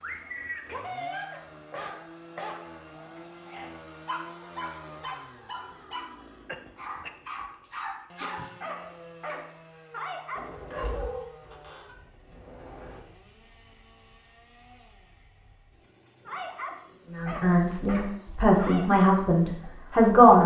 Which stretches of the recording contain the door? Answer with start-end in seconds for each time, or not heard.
10.3-13.1.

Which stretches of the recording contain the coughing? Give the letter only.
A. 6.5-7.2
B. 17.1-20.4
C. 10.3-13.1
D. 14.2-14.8
A.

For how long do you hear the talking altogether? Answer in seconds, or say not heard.
3 s.